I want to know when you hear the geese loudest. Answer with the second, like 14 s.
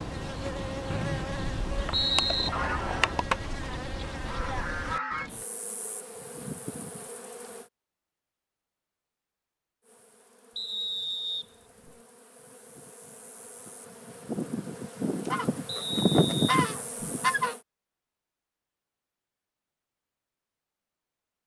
17 s.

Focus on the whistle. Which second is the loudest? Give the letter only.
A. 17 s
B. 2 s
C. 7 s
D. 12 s
B.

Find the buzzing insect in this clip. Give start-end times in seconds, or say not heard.
0.0-7.7, 9.8-17.6.